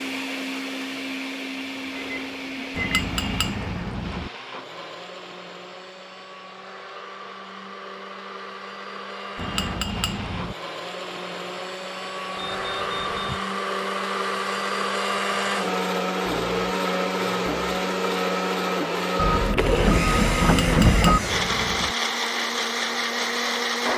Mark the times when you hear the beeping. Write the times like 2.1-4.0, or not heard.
1.9-3.0, 12.3-13.4, 19.1-21.2.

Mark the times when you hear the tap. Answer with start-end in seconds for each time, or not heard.
not heard.